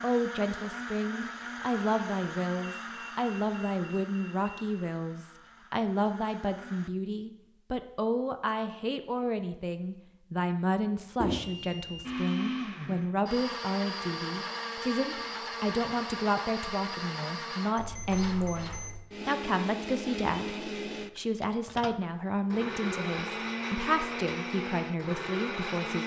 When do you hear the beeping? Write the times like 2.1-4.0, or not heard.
2.6-4.7, 11.2-12.1, 17.8-19.1.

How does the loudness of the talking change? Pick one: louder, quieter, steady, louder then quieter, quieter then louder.
steady.